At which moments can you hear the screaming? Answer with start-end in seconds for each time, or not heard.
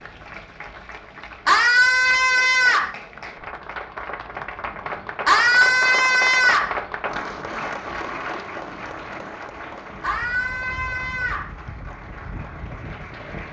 1.4-3.0, 5.2-6.7, 10.0-11.5.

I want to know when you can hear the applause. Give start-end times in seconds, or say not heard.
0.0-13.4.